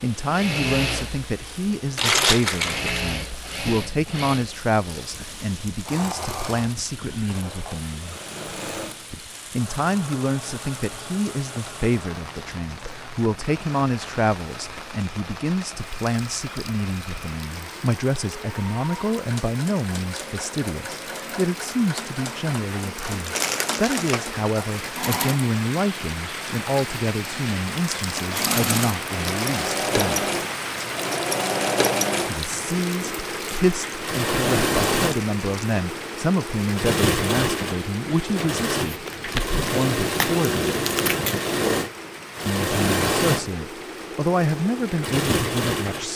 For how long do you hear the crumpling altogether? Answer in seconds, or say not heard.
5 s.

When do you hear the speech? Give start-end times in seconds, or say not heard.
0.0-8.2, 9.5-30.2, 32.2-40.8, 42.5-46.1.